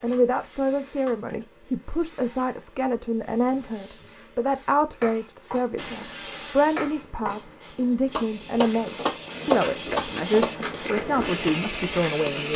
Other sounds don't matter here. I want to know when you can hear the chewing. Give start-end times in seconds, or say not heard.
9.2-12.5.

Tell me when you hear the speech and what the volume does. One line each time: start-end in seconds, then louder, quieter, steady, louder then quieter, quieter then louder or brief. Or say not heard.
0.0-12.5 steady.